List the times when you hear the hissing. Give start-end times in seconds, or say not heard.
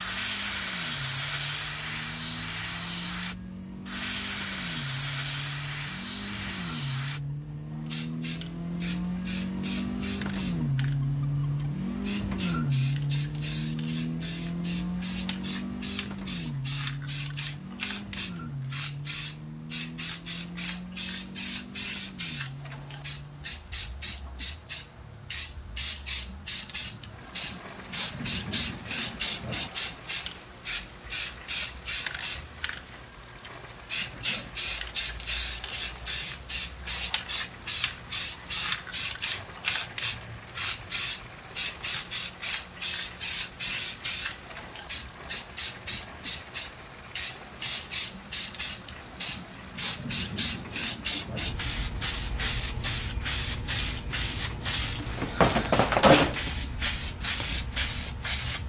0.0-58.6.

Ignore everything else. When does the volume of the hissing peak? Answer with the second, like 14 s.
56 s.